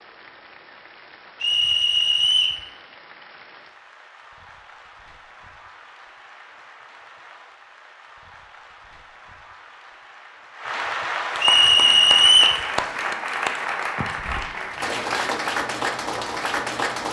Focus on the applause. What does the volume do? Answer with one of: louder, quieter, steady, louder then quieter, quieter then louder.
louder.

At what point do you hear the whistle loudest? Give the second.
12 s.